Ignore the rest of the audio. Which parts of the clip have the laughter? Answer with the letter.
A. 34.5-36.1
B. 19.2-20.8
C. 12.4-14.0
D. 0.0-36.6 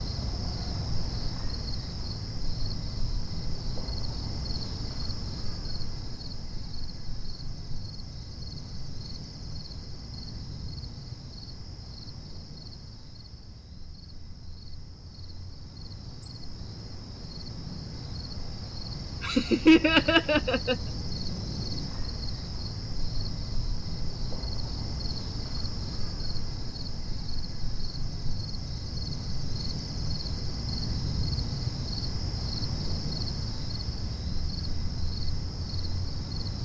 B.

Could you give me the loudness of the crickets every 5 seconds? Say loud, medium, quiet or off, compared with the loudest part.
loud, medium, medium, medium, loud, loud, loud, loud.